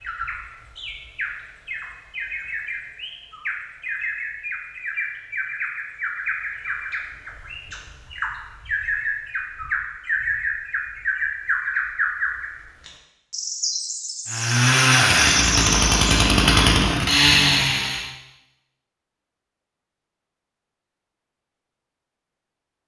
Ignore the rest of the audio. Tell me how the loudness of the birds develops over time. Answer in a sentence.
The loudness of the birds goes up.